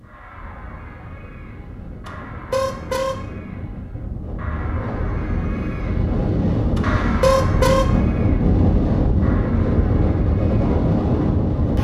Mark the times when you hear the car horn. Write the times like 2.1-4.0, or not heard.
2.0-3.2, 6.8-7.9.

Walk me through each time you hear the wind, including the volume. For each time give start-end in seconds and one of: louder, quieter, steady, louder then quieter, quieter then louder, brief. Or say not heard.
0.0-11.8 louder.